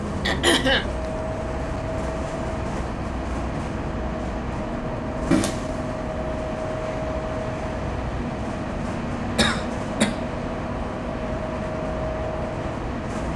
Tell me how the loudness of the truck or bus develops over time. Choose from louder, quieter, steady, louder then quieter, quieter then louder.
steady.